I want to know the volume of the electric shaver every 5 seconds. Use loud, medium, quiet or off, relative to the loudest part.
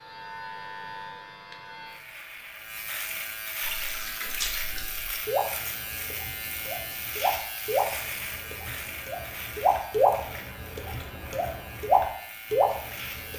loud, loud, medium.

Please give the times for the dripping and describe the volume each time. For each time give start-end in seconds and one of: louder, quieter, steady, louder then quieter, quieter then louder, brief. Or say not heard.
3.6-13.3 louder.